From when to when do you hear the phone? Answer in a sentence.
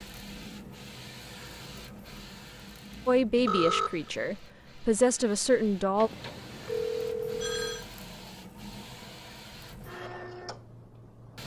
The phone can be heard from 3.5 to 4.1 s and from 6.0 to 7.8 s.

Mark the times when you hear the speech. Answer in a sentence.
You can hear the speech from 3.0 to 6.1 s.